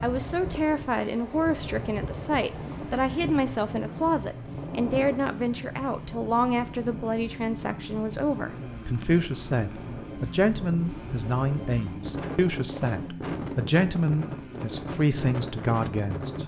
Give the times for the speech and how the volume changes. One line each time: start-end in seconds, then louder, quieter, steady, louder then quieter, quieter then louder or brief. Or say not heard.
0.0-16.4 steady.